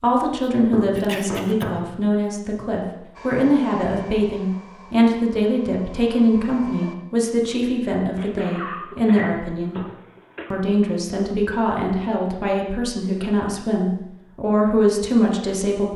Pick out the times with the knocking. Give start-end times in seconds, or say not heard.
0.7-1.9, 9.2-9.9.